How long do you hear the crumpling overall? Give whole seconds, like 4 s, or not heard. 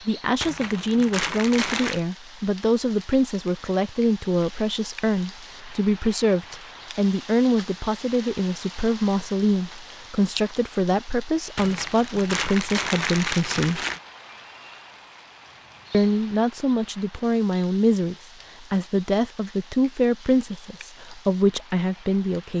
4 s.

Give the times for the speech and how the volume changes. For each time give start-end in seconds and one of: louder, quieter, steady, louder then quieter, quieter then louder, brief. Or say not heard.
0.1-13.8 steady
15.9-22.5 steady.